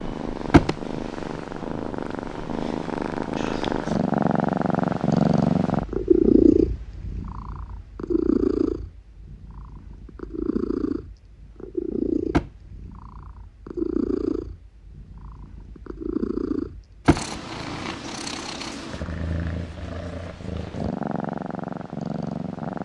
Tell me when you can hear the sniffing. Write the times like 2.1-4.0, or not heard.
not heard.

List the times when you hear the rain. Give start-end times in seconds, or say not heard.
not heard.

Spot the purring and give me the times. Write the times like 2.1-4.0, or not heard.
0.0-22.8.